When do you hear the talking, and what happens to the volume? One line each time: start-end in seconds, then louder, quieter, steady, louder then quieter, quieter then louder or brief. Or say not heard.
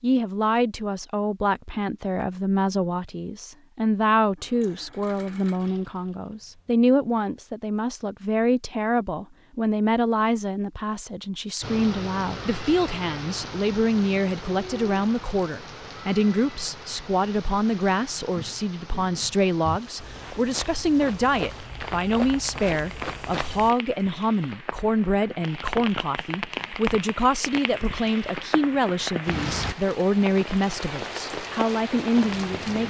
0.0-32.8 steady.